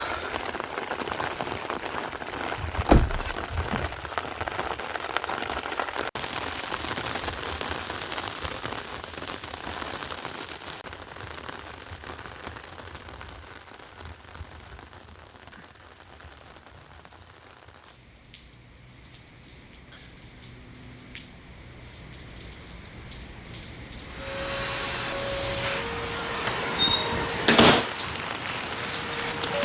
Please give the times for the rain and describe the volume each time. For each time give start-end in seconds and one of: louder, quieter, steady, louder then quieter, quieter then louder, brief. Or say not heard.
0.0-29.5 quieter then louder.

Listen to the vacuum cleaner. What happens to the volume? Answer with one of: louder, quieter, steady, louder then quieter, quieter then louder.
quieter.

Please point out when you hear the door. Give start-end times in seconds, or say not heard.
2.9-3.9, 26.4-27.9.